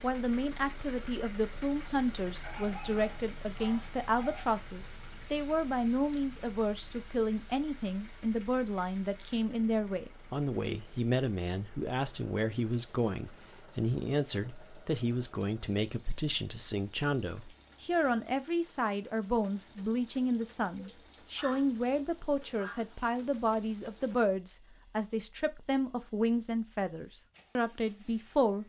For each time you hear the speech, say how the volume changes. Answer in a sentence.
The speech can be heard from 0.0 to 28.6 s, at a steady volume.